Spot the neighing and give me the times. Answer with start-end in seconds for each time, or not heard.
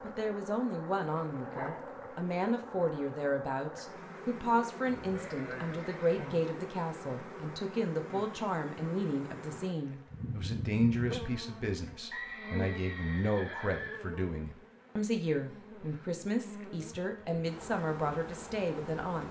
4.8-6.3, 12.1-14.1.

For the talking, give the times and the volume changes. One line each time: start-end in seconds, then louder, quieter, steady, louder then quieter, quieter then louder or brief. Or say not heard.
0.0-19.2 steady.